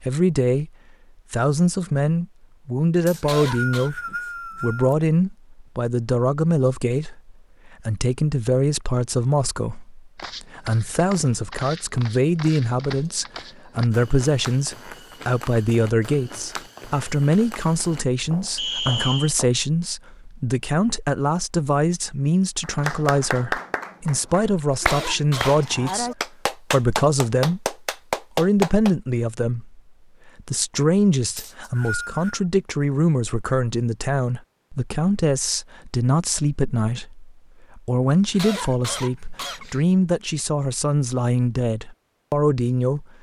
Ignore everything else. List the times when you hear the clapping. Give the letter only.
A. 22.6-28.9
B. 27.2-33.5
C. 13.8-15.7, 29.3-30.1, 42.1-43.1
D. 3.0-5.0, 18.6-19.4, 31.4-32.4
A.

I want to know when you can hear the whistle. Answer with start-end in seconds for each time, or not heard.
3.0-5.0, 18.6-19.4, 31.4-32.4.